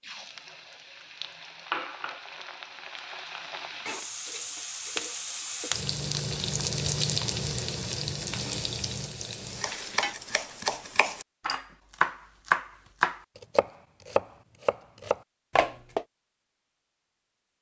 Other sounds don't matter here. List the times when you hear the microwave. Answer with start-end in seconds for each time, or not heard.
not heard.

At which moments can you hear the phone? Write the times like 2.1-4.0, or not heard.
not heard.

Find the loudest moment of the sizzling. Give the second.
7 s.